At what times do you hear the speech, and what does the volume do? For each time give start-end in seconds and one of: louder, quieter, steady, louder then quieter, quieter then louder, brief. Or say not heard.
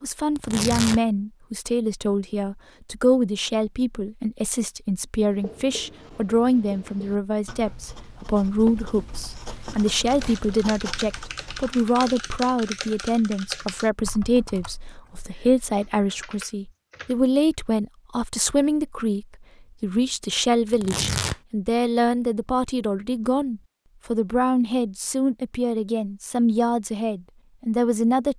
0.0-28.3 steady.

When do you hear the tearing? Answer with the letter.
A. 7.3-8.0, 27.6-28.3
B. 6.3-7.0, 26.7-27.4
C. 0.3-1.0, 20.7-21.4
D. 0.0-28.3
C.